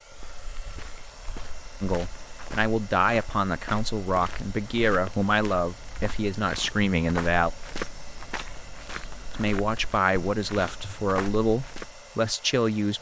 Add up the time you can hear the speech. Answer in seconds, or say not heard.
9 s.